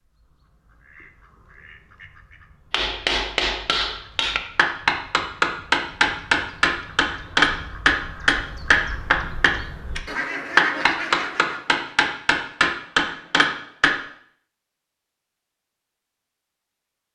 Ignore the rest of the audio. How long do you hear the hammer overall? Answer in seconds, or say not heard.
11 s.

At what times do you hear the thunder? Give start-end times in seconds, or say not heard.
not heard.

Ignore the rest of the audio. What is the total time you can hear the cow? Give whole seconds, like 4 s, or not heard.
not heard.